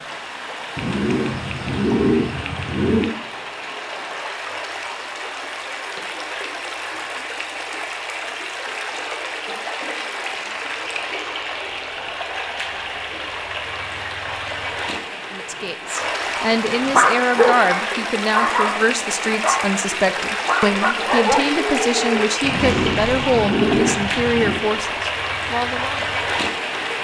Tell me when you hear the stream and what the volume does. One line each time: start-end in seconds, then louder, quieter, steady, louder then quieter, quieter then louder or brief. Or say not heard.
0.0-27.0 louder.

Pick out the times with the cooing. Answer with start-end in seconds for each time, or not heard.
0.8-3.1, 22.4-24.6.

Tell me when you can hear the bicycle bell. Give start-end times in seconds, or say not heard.
not heard.